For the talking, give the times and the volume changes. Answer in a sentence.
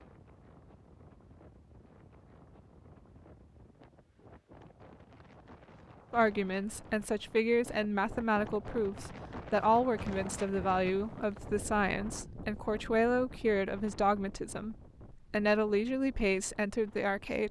The talking can be heard from 6.1 to 17.4 s, at a steady volume.